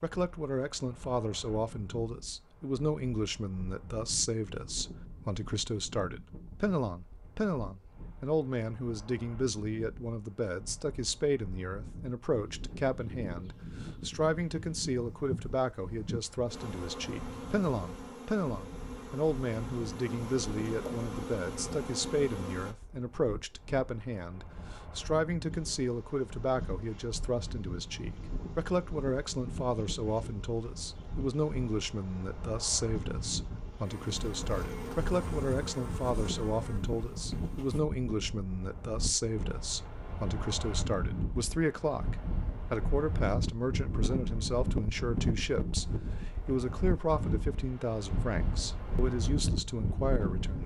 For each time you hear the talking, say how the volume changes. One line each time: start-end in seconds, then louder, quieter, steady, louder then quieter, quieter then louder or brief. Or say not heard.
0.0-50.6 steady.